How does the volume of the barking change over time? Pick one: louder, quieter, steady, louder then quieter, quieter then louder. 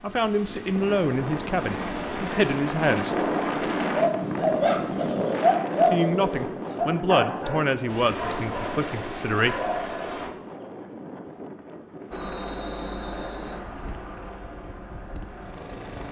quieter.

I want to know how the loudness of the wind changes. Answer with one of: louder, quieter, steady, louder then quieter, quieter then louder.
quieter.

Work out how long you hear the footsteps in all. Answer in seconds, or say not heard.
not heard.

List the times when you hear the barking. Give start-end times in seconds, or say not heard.
4.0-10.8.